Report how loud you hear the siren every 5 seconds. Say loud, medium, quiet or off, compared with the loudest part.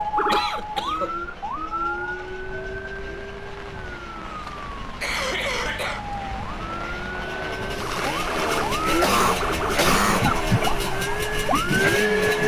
medium, medium, loud.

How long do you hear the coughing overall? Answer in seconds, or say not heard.
3 s.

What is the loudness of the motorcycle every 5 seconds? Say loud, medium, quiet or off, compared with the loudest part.
quiet, loud, loud.